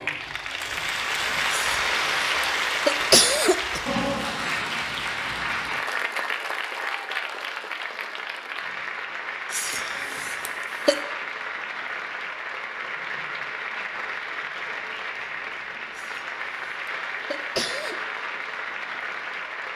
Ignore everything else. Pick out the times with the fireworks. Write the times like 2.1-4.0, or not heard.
not heard.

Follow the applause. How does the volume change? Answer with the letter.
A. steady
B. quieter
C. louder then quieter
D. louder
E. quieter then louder
B.